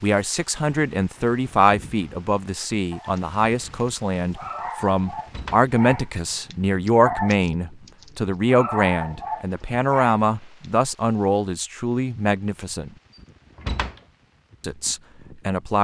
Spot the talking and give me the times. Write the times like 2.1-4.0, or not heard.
0.0-12.9, 14.6-15.7.